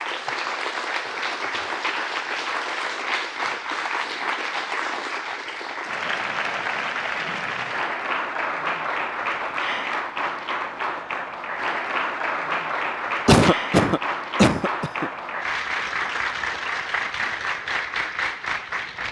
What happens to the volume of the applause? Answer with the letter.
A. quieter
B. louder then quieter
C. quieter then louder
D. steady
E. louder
D.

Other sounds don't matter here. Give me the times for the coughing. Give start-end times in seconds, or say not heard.
13.2-15.1.